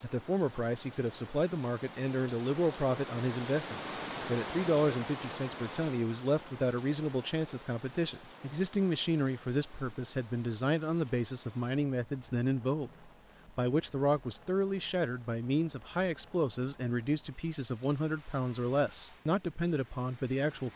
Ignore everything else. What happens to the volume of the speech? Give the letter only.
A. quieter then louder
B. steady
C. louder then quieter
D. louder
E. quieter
B.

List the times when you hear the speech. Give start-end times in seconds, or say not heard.
0.0-20.7.